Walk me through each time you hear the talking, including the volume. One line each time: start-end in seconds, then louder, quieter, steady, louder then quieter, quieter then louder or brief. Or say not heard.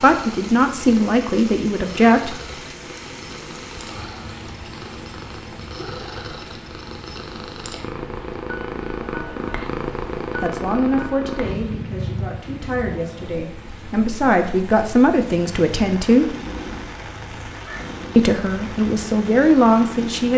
0.0-2.4 brief
10.4-16.4 quieter then louder
18.1-20.3 brief.